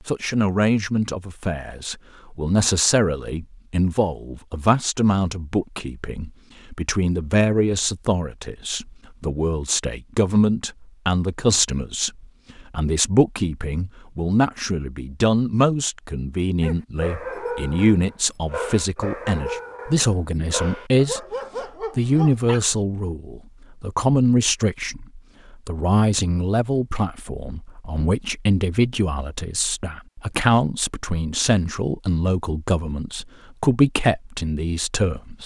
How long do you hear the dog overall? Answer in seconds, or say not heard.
6 s.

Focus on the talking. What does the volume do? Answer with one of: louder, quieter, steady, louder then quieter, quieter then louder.
steady.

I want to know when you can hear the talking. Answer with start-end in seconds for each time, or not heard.
0.1-21.2, 21.9-35.4.